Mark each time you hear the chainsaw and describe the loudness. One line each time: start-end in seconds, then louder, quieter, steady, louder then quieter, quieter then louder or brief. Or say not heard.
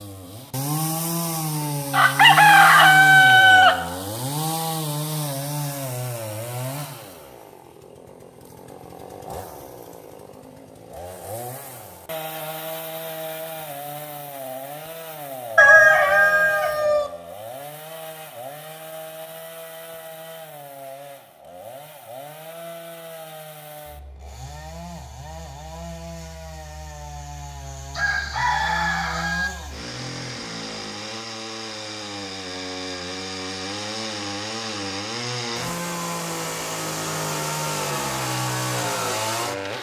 0.0-39.7 quieter then louder.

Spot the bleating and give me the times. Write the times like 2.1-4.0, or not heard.
not heard.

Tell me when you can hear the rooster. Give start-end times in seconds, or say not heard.
1.9-3.8, 15.6-17.1, 27.9-29.5.